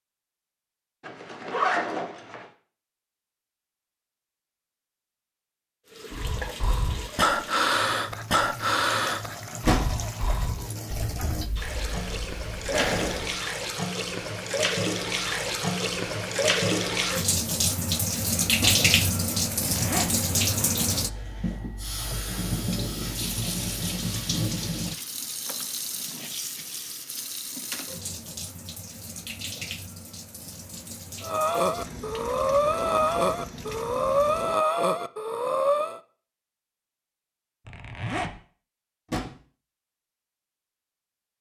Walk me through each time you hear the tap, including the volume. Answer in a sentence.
The tap can be heard from 5.8 to 34.6 s, getting louder then quieter.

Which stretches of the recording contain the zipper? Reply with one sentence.
The zipper can be heard from 1.0 to 2.5 s, from 19.4 to 20.1 s and from 37.6 to 38.4 s.